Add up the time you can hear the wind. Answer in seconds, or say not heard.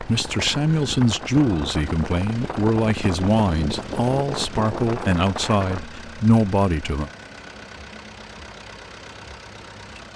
6 s.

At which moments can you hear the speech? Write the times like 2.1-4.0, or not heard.
0.0-7.1.